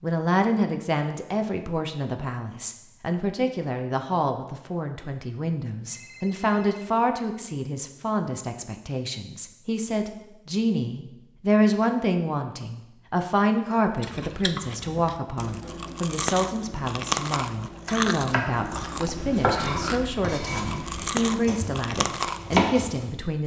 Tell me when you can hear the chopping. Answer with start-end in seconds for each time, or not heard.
17.9-23.4.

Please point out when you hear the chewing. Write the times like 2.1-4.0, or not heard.
13.9-22.7.